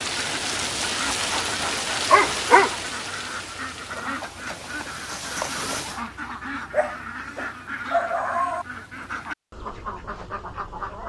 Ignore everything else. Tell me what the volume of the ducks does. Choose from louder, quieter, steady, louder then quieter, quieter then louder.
steady.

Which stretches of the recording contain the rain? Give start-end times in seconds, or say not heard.
0.0-6.0.